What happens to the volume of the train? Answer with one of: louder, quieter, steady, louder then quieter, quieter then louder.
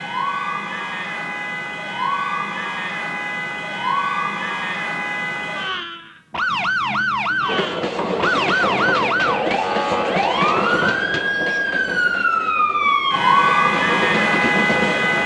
quieter then louder.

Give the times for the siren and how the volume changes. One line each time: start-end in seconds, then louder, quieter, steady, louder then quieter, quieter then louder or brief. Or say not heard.
0.0-15.2 louder.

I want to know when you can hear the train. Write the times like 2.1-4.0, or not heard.
7.5-15.2.